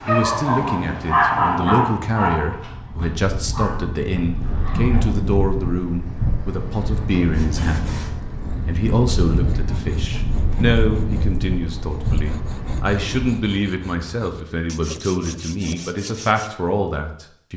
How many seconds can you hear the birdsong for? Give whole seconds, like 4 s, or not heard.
not heard.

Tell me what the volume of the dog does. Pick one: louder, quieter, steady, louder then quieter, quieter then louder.
quieter.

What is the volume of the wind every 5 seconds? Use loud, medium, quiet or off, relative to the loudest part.
loud, loud, loud, off.